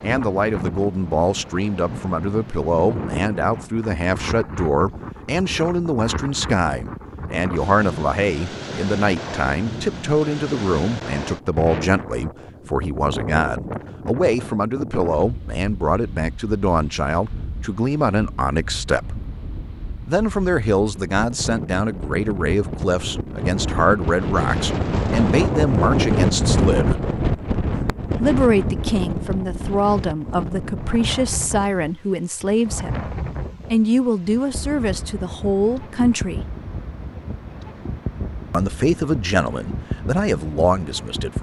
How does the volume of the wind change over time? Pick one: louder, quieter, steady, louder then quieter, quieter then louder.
louder then quieter.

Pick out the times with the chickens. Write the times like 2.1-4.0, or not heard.
not heard.